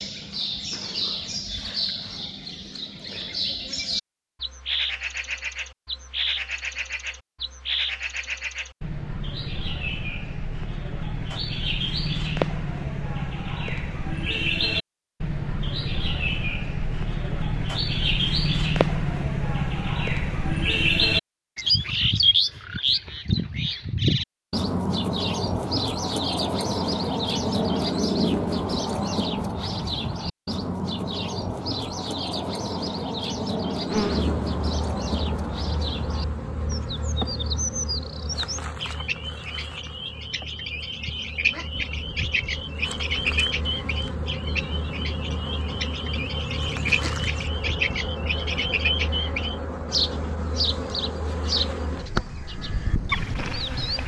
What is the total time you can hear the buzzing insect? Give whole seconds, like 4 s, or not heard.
20 s.